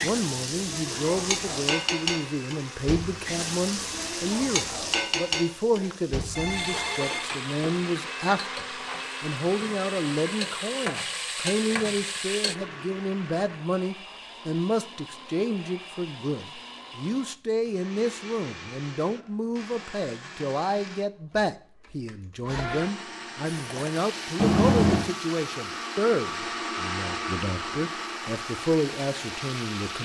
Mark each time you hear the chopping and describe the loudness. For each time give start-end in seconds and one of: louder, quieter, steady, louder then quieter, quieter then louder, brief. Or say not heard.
not heard.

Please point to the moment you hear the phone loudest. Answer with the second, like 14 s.
25 s.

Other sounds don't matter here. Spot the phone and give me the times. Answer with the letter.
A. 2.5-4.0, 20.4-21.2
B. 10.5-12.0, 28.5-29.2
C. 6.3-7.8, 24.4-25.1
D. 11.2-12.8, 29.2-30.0
C.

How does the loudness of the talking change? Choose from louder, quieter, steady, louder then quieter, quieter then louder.
steady.